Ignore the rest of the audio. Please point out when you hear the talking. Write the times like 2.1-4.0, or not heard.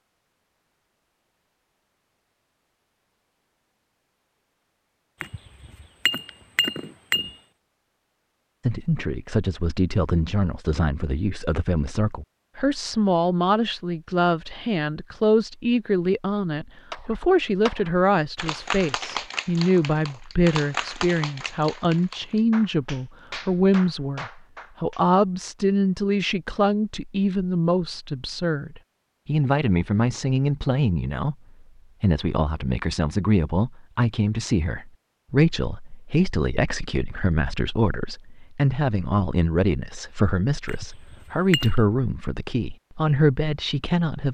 8.7-31.4, 32.0-44.2.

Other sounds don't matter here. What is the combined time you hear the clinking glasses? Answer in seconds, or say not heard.
3 s.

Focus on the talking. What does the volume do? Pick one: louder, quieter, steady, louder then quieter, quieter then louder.
steady.